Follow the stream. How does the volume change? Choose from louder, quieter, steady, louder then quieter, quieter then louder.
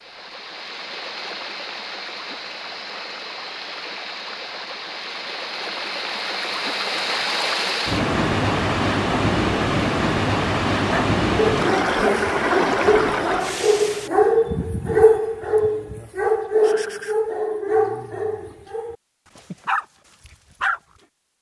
louder.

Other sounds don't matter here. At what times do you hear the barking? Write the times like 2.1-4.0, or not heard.
10.8-20.8.